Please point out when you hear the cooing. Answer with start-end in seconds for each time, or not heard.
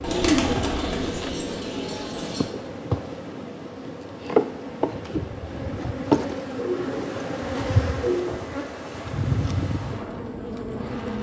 0.0-2.5, 6.5-8.3.